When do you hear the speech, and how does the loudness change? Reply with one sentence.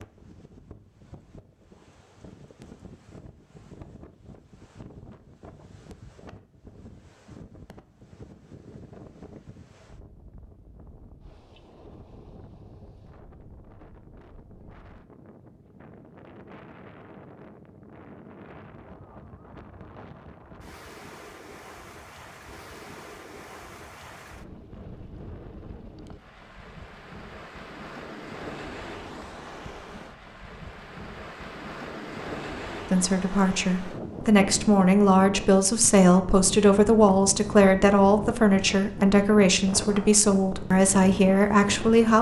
You can hear the speech from 32.9 to 42.1 s, at a steady volume.